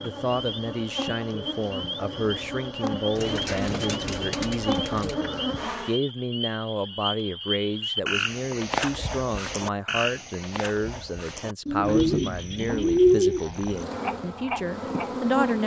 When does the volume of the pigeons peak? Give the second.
13 s.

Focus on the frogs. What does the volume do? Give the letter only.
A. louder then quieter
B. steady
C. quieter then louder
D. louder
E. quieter
A.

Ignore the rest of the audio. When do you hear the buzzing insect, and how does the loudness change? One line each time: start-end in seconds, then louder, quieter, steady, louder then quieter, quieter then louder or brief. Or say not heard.
0.0-6.0 louder
13.7-15.6 brief.